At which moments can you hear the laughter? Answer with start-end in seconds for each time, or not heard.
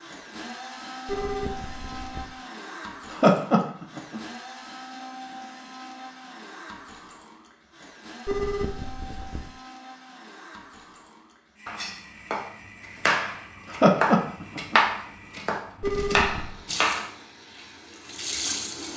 3.1-4.2, 13.7-14.8.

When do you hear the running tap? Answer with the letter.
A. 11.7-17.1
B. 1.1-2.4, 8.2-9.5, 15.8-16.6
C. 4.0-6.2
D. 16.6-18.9
D.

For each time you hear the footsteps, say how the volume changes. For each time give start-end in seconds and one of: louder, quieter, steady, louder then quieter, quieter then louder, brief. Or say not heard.
not heard.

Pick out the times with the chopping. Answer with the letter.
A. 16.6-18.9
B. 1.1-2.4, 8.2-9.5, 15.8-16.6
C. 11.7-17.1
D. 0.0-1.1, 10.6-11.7
C.